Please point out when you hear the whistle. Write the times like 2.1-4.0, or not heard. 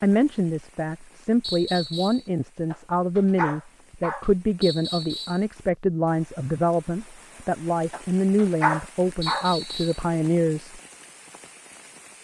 1.4-2.3, 4.6-5.5, 9.2-10.1.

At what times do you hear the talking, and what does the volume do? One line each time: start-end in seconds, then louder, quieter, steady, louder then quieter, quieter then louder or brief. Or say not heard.
0.0-10.8 steady.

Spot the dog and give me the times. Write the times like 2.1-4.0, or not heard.
2.7-4.3, 7.9-9.5.